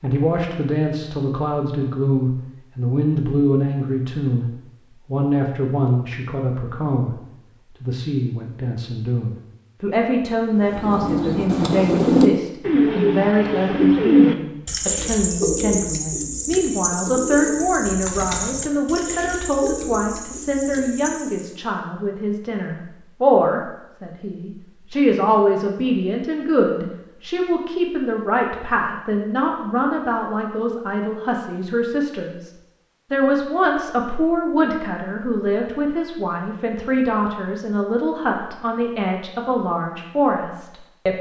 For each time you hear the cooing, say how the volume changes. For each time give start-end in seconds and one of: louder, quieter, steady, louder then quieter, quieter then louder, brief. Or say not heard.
10.6-21.6 quieter.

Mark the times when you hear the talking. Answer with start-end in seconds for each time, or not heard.
0.0-4.5, 5.0-7.2, 7.8-32.5, 33.1-41.1.